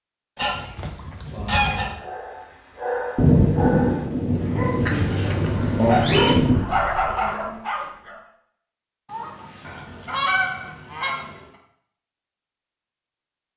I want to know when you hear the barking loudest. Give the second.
6 s.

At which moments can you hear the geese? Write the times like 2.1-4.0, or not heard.
0.3-1.9, 4.8-6.8, 9.1-11.3.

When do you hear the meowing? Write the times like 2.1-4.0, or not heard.
not heard.